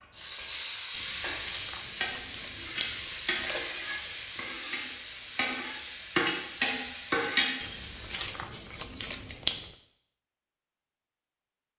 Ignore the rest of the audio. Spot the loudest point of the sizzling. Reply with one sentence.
The volume of the sizzling peaks at 7 seconds.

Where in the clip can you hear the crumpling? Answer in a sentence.
The crumpling can be heard from 0.9 to 3.7 s and from 7.6 to 9.7 s.